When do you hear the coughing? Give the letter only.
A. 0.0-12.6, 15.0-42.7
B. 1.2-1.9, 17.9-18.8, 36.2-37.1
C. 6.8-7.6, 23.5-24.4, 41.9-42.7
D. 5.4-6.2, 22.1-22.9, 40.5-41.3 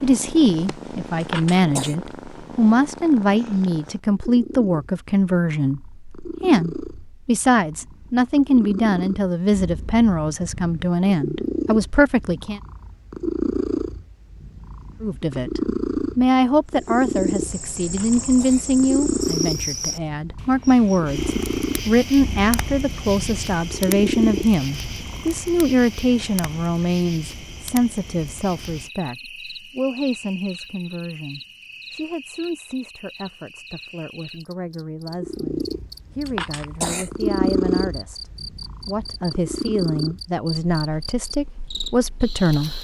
B.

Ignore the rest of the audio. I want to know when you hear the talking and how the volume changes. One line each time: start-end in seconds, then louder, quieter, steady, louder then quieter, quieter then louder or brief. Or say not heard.
0.0-12.6 steady
15.0-42.7 quieter then louder.